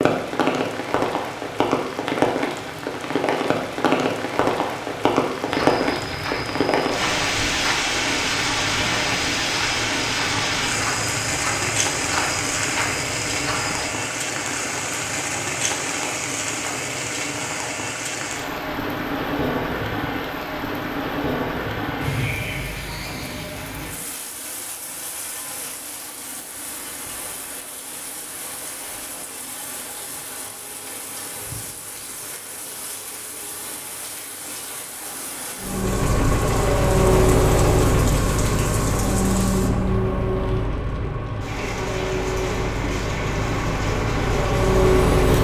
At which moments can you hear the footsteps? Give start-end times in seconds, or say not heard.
5.5-13.9.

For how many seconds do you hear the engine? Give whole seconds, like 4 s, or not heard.
10 s.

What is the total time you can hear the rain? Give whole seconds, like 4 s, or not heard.
45 s.